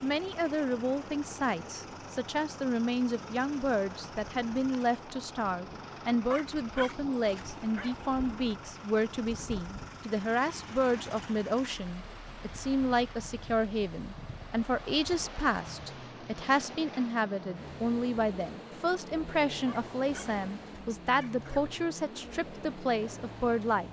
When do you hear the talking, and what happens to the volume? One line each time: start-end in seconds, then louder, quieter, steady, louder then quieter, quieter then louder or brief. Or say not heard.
0.0-23.8 steady.